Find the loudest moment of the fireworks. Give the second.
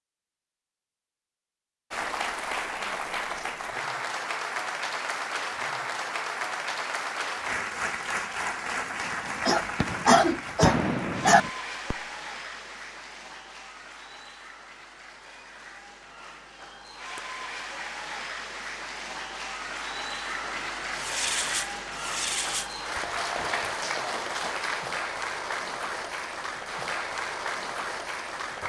11 s.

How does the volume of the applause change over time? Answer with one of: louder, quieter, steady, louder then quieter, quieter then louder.
quieter then louder.